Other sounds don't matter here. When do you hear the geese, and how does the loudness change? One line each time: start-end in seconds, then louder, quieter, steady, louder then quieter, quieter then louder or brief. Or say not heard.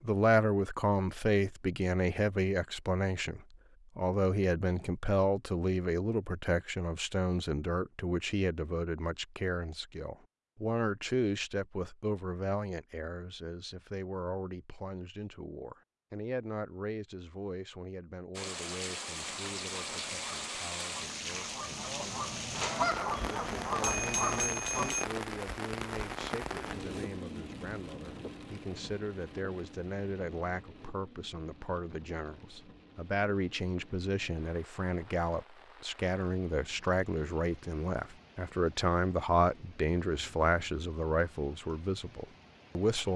19.2-24.9 louder.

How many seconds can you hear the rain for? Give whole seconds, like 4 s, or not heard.
25 s.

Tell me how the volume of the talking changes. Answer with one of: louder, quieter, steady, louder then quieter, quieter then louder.
quieter then louder.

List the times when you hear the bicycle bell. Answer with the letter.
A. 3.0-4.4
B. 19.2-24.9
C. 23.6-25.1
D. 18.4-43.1
C.